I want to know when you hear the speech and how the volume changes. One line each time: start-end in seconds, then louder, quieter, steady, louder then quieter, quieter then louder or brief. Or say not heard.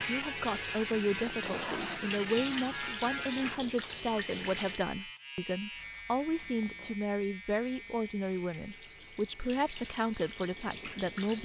0.1-11.4 steady.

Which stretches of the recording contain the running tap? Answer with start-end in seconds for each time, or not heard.
0.0-4.8, 7.6-11.4.